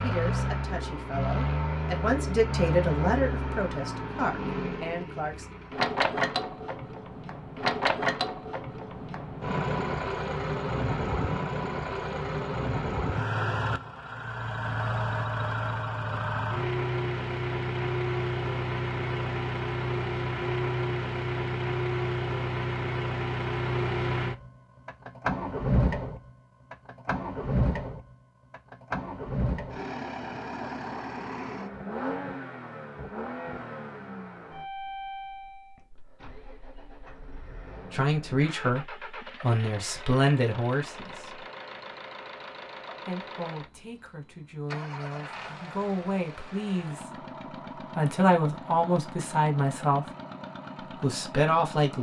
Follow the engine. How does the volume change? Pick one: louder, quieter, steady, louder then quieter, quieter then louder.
quieter.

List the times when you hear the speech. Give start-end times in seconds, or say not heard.
0.0-5.5, 37.9-41.5, 43.0-47.1, 48.0-50.0, 51.0-51.9.